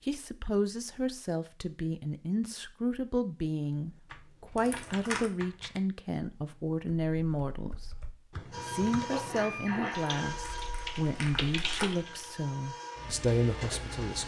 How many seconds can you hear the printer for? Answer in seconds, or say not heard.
6 s.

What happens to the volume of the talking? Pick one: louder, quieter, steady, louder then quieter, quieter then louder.
steady.